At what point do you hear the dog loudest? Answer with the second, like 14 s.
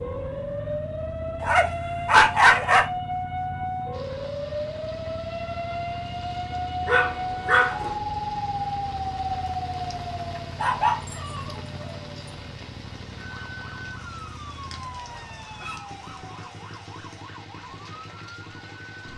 2 s.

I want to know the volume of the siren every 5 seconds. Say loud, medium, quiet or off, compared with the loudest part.
loud, loud, medium, quiet.